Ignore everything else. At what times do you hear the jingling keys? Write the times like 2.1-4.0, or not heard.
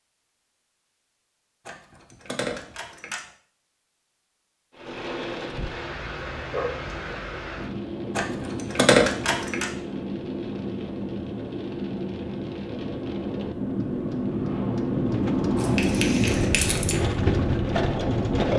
1.6-3.2, 8.2-9.7, 15.6-17.0.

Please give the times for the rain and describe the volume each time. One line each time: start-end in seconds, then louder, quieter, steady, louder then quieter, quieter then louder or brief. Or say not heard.
4.7-18.5 louder.